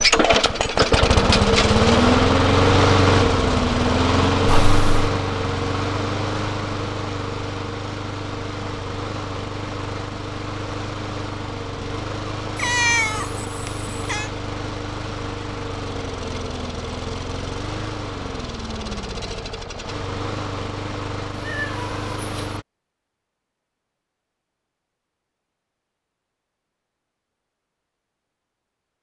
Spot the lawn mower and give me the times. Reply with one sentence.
You can hear the lawn mower from 0.0 to 22.6 s.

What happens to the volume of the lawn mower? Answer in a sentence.
The loudness of the lawn mower goes down.